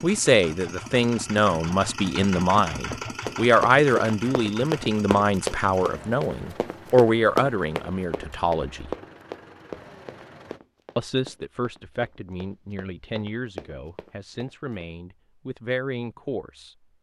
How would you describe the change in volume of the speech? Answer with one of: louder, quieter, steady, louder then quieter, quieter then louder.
quieter.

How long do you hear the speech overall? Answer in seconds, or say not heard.
15 s.